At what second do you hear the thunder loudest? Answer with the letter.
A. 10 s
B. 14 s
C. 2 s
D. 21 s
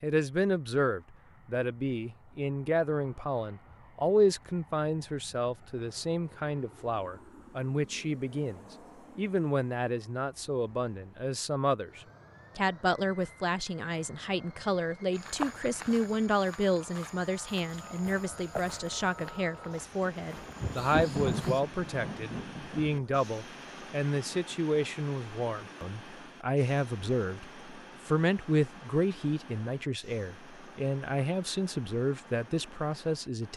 D.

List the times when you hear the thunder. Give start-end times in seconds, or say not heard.
20.2-23.2.